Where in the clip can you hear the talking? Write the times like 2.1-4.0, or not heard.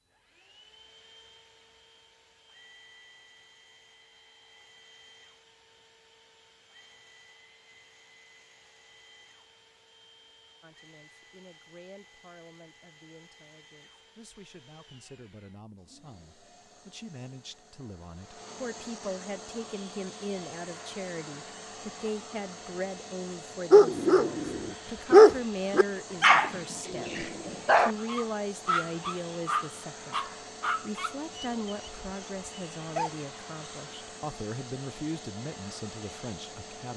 10.6-36.9.